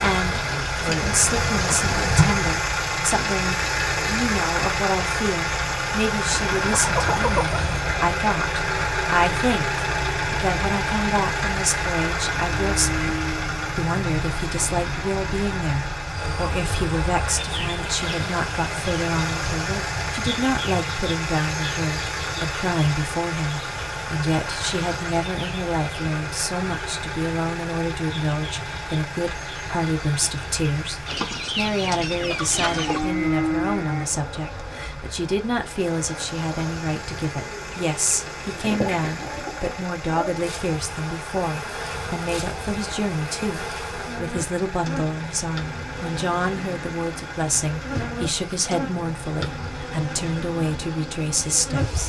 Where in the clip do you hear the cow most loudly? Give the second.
33 s.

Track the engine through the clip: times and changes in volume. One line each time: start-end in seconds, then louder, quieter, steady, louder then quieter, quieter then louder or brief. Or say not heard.
0.0-52.0 quieter.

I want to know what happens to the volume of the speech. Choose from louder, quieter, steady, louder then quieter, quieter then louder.
steady.